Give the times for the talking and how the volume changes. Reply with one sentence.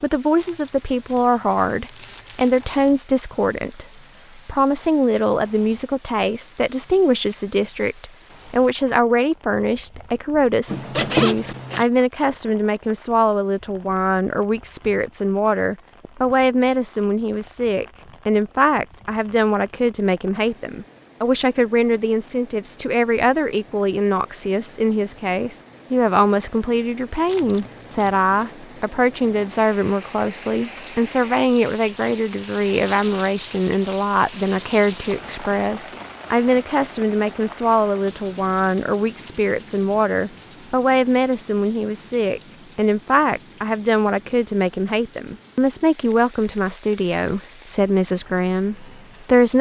You can hear the talking from 0.0 to 49.5 s, at a steady volume.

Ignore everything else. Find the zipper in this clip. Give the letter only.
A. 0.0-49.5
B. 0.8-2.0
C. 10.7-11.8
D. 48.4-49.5
C.